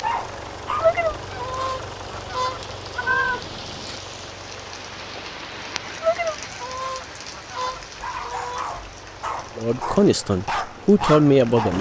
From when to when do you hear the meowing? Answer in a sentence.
The meowing can be heard from 3.0 to 4.0 s.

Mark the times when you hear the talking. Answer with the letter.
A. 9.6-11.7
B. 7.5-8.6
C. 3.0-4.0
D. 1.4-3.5
A.